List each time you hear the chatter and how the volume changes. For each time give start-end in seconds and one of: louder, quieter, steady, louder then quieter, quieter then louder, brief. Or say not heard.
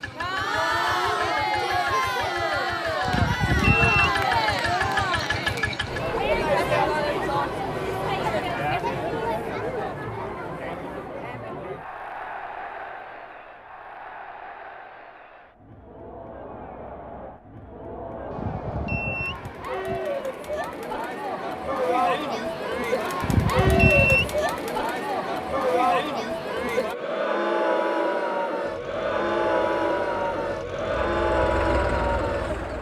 0.0-32.7 quieter then louder.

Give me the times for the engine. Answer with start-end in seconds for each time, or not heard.
0.0-6.2, 28.6-32.7.